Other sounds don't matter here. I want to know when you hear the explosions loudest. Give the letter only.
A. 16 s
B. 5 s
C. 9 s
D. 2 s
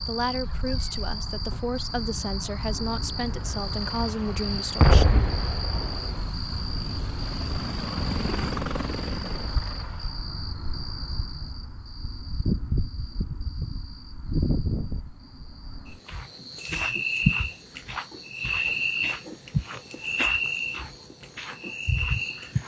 B.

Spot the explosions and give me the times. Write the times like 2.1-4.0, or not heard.
4.8-6.3.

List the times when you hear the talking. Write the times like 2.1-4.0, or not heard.
0.1-5.2.